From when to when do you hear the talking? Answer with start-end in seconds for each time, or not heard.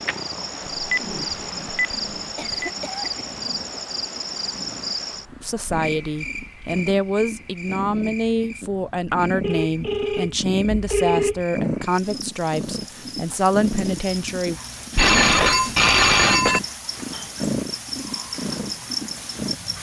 5.4-14.6.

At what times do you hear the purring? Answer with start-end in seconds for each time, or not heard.
0.0-19.7.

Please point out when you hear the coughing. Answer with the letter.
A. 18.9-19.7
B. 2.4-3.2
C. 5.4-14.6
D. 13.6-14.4
B.